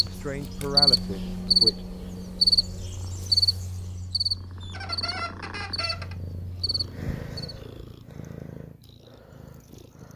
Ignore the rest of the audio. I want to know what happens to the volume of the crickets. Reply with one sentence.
The loudness of the crickets goes down.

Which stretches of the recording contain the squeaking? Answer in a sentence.
The squeaking can be heard from 4.6 to 6.2 s.